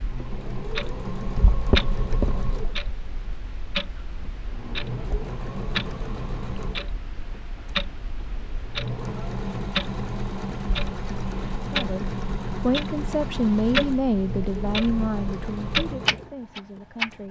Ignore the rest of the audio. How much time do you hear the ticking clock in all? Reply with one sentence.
You can hear the ticking clock for 17 seconds altogether.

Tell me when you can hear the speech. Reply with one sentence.
You can hear the speech from 11.7 to 17.2 s.